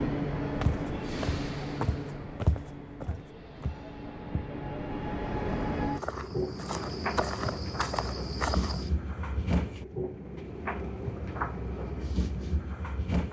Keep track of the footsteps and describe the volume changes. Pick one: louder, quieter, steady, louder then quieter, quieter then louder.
quieter then louder.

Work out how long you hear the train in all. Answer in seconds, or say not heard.
13 s.